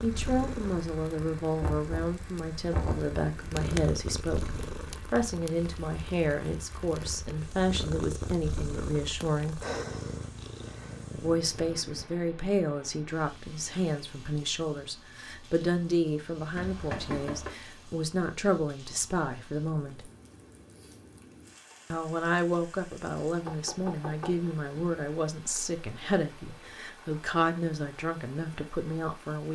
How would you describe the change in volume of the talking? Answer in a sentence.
The loudness of the talking stays about the same.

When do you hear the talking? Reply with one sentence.
The talking can be heard from 0.0 to 9.6 s, from 11.1 to 20.1 s and from 21.9 to 29.4 s.